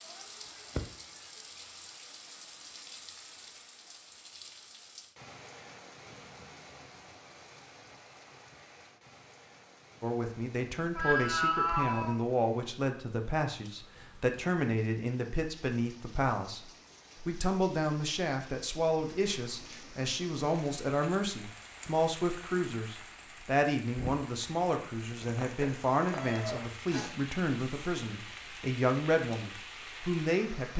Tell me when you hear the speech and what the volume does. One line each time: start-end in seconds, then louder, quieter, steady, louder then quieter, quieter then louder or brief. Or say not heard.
10.0-30.7 steady.